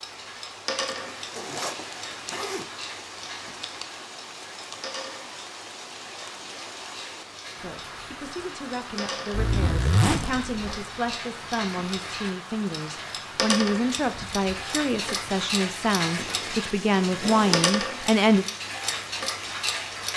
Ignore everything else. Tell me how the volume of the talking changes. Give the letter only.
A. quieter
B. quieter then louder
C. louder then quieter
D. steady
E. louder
E.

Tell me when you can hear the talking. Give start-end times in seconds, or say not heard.
7.6-18.4.